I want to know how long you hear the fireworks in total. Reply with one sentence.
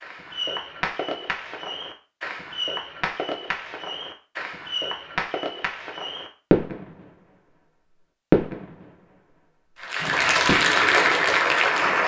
You can hear the fireworks for 9 seconds altogether.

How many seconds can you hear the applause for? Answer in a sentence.
The applause can be heard for 2 seconds in total.